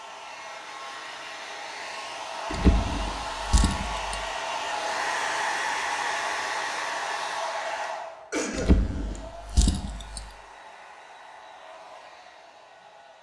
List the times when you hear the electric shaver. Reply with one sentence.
The electric shaver can't be heard in this clip.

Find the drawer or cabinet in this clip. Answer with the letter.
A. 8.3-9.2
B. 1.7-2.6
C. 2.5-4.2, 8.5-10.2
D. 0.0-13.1
C.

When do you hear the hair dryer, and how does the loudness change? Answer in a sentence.
The hair dryer can be heard from 0.0 to 13.1 s, getting louder then quieter.